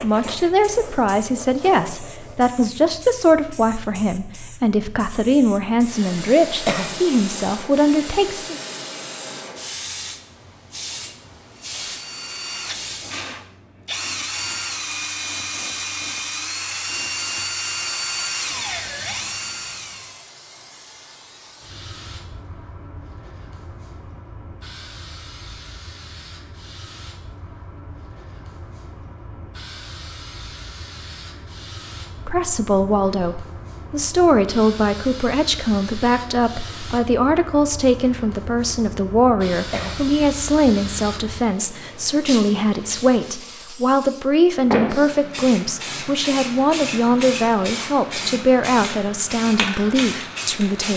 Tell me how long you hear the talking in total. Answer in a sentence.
You can hear the talking for 27 seconds altogether.